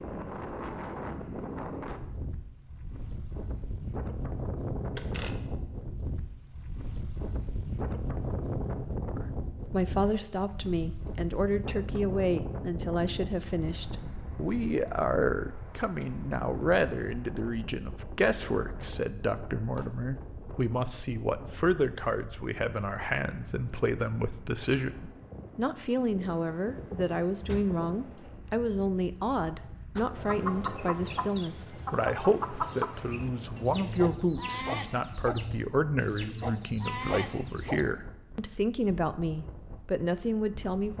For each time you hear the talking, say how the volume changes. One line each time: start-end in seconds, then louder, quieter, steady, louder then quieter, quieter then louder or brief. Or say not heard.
9.1-40.9 steady.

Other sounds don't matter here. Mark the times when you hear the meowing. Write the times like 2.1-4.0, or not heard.
not heard.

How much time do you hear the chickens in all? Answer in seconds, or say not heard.
8 s.